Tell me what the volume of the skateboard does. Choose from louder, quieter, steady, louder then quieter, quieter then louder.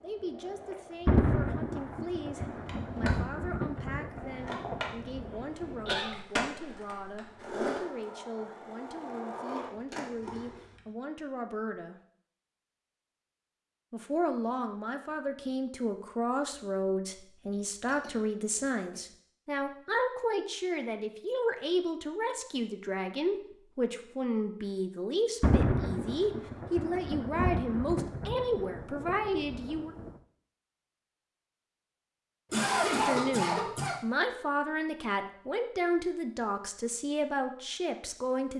louder.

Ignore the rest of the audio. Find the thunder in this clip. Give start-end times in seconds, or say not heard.
1.1-6.0, 25.4-30.1.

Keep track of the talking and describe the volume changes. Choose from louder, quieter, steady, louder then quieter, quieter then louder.
louder.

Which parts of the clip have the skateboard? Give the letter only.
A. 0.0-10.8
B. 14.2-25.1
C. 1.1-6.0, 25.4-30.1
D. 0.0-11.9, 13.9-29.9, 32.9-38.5
A.